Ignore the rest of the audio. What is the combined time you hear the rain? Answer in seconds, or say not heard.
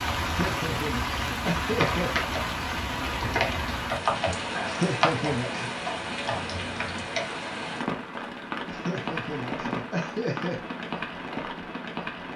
12 s.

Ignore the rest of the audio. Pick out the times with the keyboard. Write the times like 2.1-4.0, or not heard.
1.6-7.3.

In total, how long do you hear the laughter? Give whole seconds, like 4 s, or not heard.
5 s.